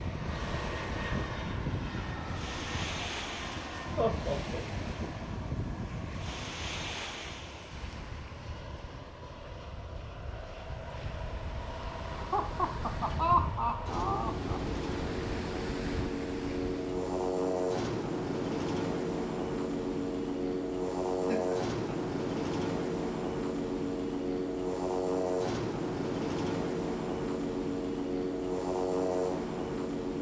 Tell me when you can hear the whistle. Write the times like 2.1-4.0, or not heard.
not heard.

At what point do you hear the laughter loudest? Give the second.
13 s.